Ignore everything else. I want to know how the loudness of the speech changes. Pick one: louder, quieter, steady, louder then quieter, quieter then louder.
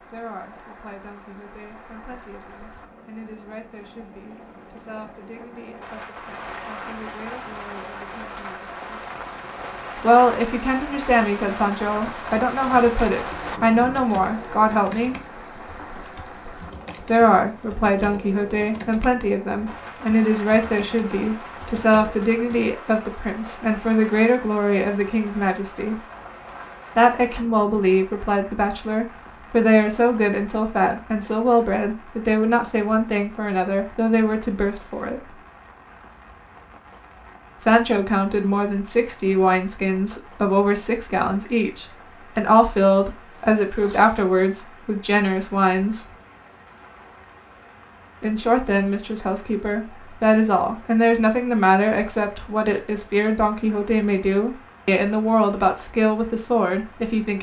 louder.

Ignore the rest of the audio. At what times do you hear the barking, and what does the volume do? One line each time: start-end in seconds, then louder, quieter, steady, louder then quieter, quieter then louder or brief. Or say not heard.
not heard.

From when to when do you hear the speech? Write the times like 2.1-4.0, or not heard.
0.0-9.1, 9.9-15.2, 17.0-26.0, 26.9-35.4, 37.6-46.0, 48.2-57.3.